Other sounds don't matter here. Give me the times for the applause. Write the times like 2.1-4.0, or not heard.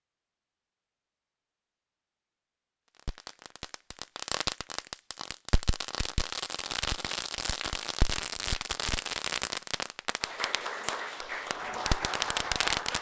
10.2-12.9.